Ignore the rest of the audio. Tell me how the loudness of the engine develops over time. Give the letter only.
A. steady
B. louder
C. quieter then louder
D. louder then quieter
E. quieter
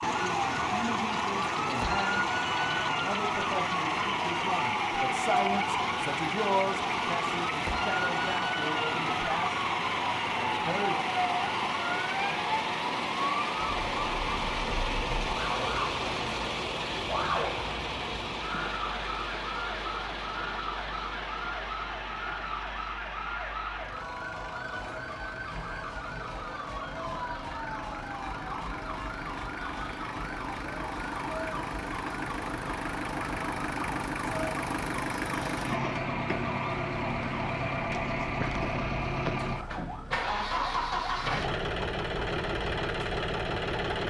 C.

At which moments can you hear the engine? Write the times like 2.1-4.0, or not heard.
0.0-44.0.